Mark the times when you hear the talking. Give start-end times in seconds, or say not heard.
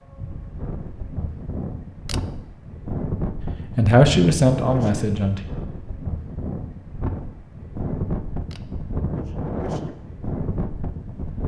3.8-5.5.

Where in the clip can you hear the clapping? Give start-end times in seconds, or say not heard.
not heard.